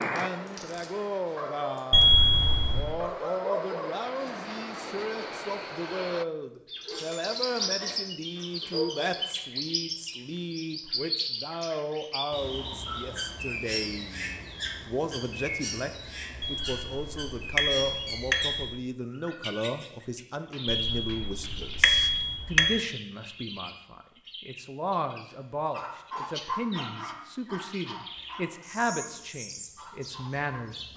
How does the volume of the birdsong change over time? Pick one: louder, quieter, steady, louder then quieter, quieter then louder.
quieter.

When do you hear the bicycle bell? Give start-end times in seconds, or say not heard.
1.9-2.9, 16.4-18.6, 20.6-22.8.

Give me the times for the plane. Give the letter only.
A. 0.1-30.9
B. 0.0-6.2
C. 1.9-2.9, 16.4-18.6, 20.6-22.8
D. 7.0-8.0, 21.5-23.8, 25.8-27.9
B.